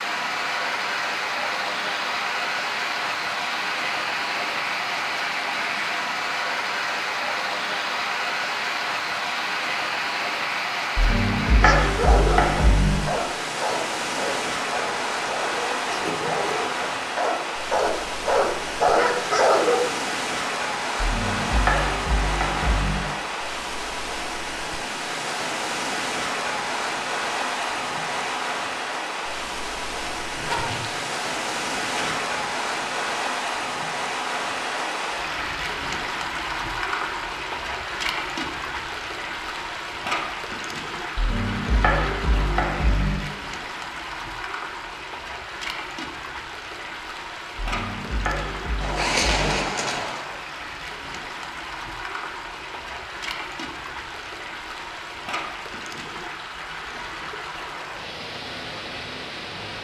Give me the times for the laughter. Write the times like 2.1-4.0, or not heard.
not heard.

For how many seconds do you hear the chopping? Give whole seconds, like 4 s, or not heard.
8 s.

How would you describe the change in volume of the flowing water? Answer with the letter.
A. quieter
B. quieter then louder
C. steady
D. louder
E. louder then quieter
A.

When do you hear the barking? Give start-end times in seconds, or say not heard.
11.5-19.9.